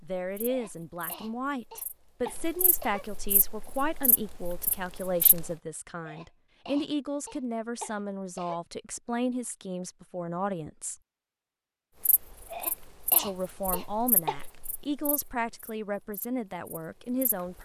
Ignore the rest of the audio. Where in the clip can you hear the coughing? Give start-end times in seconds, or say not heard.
0.5-3.0, 6.0-8.6, 12.5-14.4.